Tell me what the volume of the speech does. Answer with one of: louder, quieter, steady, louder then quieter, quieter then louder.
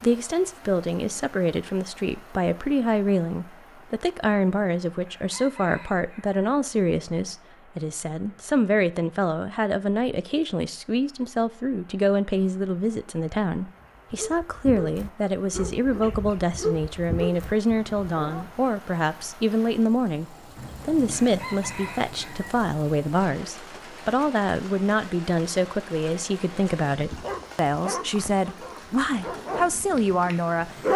steady.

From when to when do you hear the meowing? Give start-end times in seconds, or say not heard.
not heard.